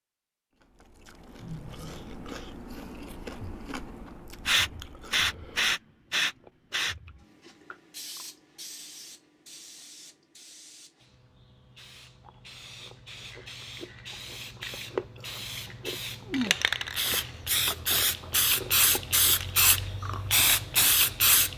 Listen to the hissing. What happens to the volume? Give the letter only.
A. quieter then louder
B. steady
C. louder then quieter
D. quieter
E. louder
A.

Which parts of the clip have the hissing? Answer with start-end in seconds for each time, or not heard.
4.5-21.5.